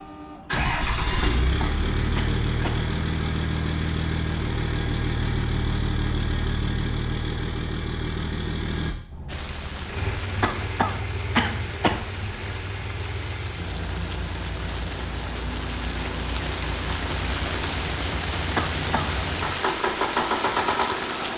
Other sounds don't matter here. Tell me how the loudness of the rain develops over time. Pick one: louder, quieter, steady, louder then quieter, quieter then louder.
louder.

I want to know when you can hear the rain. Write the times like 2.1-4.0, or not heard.
9.2-21.3.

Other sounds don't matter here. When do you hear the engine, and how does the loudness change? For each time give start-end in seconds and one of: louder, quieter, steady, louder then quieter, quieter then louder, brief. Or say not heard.
0.0-21.3 quieter then louder.